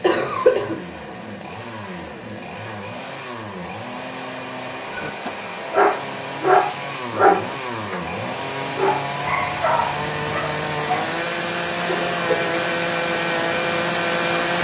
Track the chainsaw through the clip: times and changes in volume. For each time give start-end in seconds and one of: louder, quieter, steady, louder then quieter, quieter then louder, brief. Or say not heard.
0.0-14.5 louder.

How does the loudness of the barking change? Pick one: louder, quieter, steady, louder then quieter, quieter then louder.
quieter.